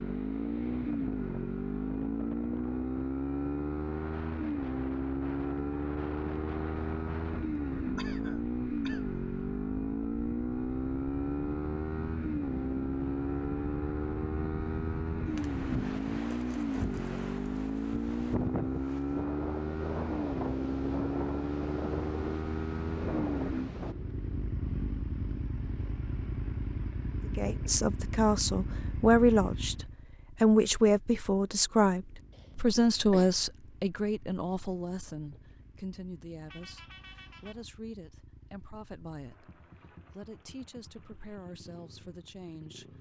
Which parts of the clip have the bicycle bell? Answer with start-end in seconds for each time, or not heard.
not heard.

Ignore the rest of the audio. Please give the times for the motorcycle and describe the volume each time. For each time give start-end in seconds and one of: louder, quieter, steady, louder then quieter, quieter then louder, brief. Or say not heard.
0.0-42.9 quieter.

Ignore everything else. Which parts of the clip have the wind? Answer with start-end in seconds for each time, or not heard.
0.0-23.9.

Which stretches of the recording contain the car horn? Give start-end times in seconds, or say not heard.
36.5-37.6.